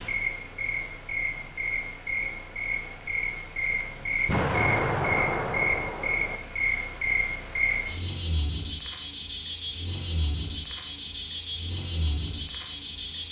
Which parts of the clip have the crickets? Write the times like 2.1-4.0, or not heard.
0.0-13.2.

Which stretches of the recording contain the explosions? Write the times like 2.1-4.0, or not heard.
4.2-6.4.